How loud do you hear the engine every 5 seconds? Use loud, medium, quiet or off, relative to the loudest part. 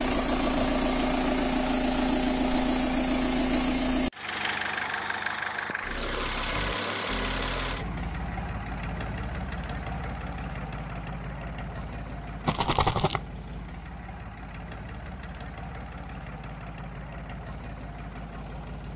loud, medium, quiet, quiet.